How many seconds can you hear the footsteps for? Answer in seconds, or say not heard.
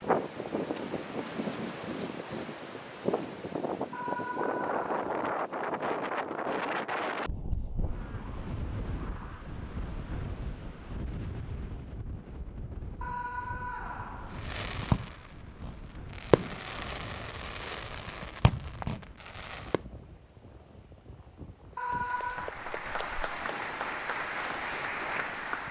not heard.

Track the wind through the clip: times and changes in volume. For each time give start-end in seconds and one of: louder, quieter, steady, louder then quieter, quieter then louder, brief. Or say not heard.
0.0-25.6 quieter.